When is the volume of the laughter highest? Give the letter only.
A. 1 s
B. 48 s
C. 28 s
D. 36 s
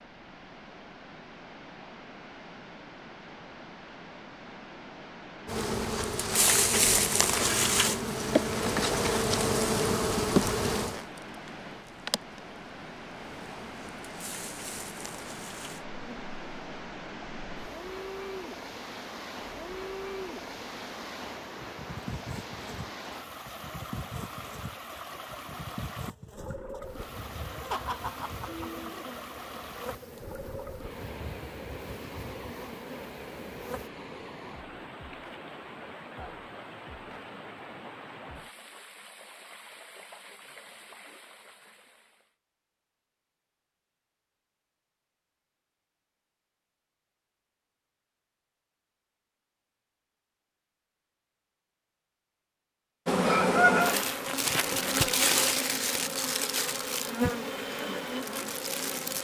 C.